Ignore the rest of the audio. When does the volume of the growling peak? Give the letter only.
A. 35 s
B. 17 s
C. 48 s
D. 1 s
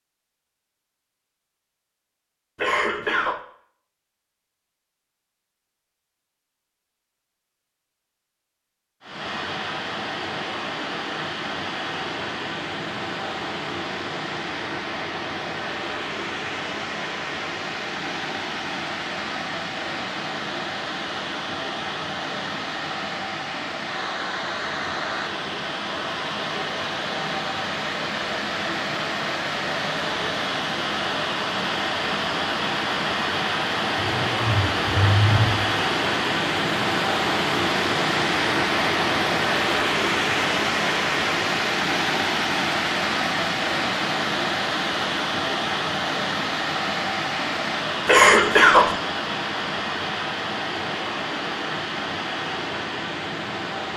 A.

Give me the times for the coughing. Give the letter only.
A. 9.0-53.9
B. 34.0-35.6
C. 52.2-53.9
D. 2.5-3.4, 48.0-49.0
D.